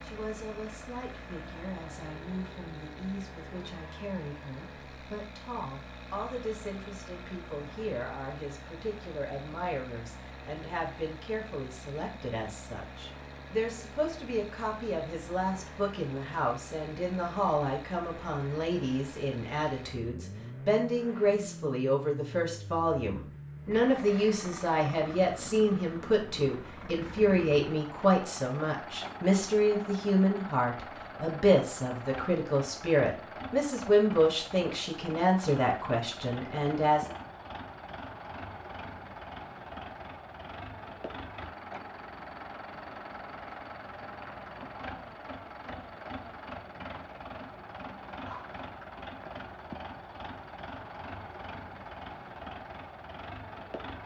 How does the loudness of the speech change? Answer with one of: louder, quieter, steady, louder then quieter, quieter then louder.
louder.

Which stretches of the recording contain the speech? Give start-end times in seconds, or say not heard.
0.0-37.1.